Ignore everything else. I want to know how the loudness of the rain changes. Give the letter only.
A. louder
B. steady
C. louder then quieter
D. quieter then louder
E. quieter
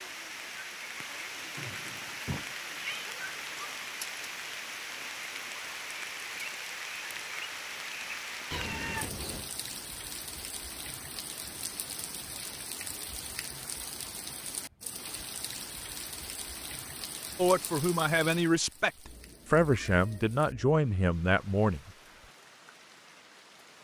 E.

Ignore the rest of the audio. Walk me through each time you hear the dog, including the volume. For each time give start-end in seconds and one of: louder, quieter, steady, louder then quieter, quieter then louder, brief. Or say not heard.
not heard.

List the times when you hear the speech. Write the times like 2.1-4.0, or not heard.
17.4-21.9.